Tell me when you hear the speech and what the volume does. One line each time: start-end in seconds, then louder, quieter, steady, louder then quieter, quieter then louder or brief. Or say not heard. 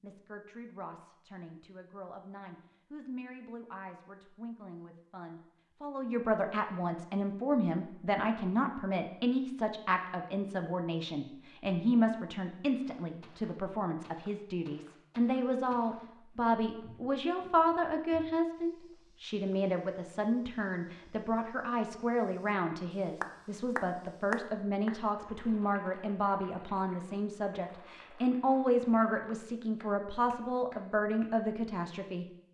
0.0-32.2 louder.